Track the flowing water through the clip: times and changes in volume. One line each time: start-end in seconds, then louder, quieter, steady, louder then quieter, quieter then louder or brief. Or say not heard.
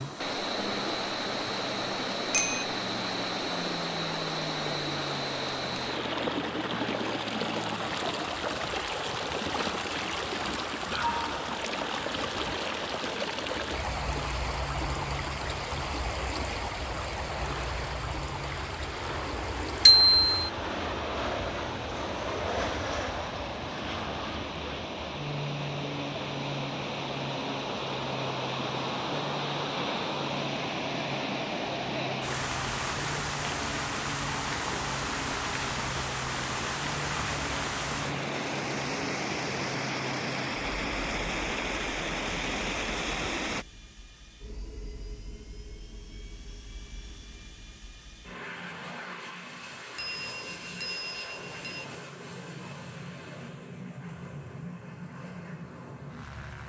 0.0-43.6 quieter then louder.